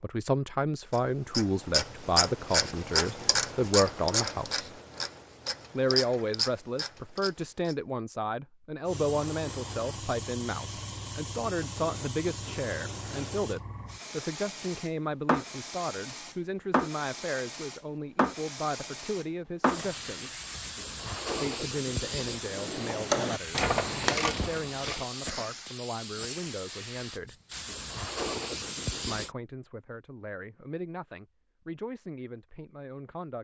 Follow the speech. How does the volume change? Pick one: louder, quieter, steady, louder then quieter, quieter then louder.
quieter.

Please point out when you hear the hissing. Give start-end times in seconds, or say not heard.
8.8-29.4.